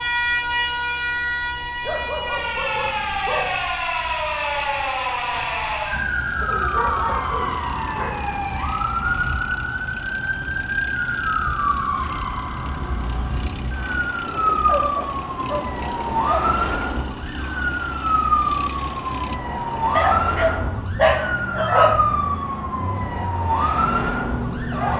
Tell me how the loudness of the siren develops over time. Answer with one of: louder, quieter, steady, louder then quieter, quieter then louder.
steady.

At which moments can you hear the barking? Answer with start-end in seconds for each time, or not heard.
1.8-3.6, 6.4-8.2, 14.2-16.6, 19.9-22.0.